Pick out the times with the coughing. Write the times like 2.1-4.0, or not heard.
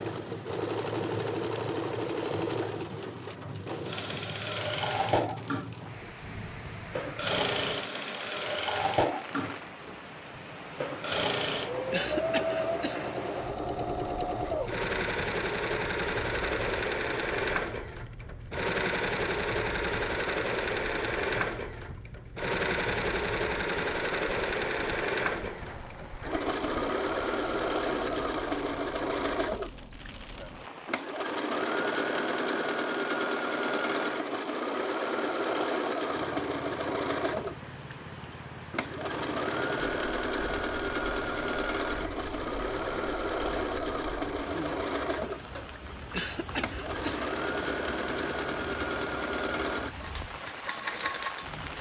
11.9-13.2, 46.1-47.3.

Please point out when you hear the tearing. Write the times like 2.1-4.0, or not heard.
not heard.